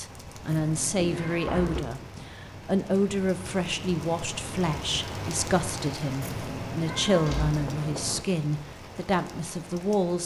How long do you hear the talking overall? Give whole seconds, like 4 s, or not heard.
10 s.